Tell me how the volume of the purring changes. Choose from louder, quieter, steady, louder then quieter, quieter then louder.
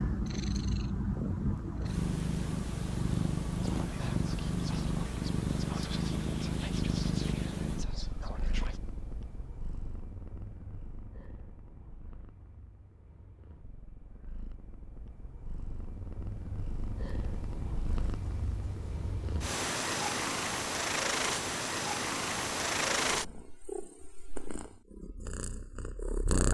quieter then louder.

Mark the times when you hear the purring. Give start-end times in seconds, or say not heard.
0.0-26.4.